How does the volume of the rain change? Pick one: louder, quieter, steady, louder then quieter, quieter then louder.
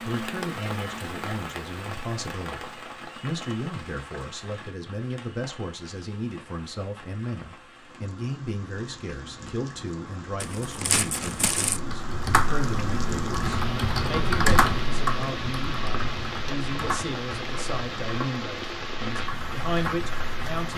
quieter then louder.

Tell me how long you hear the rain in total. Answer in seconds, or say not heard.
21 s.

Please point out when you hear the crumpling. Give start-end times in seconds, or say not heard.
10.4-11.8.